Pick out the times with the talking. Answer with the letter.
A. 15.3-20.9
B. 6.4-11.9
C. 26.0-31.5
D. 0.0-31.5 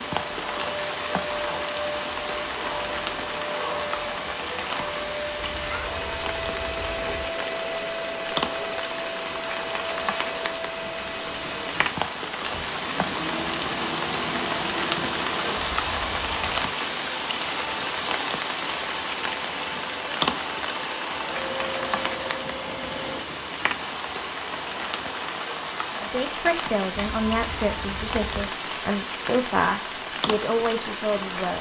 C.